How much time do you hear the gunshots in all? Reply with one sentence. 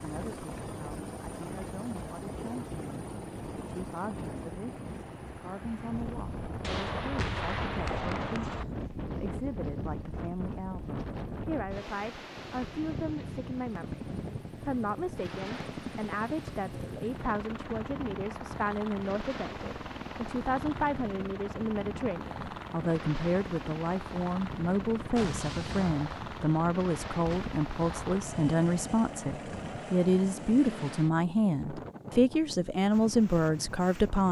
The gunshots can be heard for 5 seconds in total.